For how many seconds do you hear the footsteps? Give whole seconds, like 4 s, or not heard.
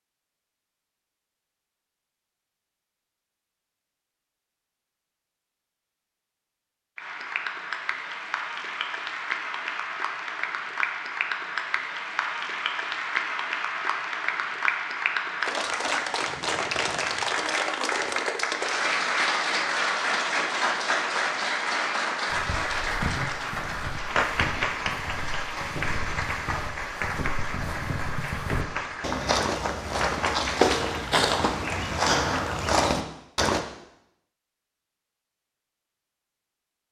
11 s.